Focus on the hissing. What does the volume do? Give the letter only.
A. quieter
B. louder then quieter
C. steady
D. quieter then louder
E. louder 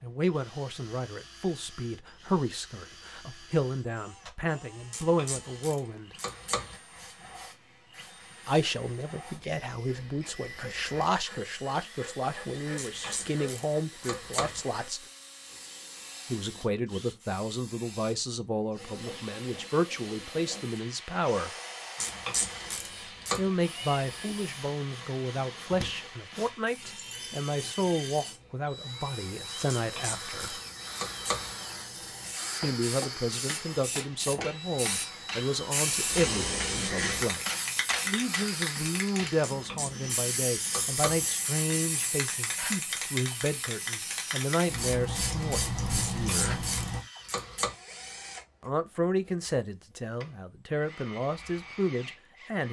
E.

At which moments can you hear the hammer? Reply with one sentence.
The hammer can be heard from 33.5 to 39.5 s.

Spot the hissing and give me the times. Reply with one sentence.
The hissing can be heard from 6.8 to 47.0 s.